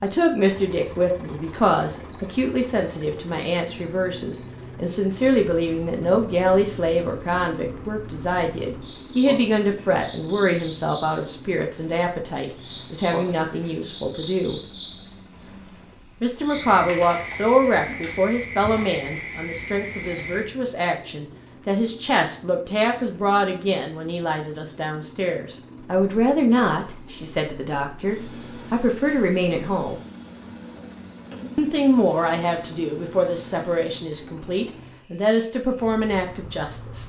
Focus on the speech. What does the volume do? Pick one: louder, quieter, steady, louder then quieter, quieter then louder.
steady.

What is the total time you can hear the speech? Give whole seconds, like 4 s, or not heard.
34 s.